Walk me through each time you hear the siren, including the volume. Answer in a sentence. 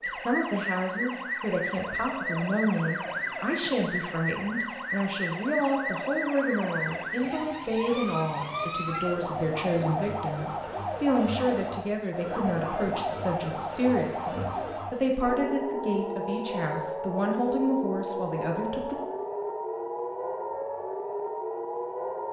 You can hear the siren from 0.0 to 22.2 s, at a steady volume.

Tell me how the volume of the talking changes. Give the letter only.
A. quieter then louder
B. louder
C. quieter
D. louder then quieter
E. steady
E.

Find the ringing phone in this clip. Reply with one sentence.
You can't hear the ringing phone here.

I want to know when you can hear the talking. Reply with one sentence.
The talking can be heard from 0.1 to 18.9 s.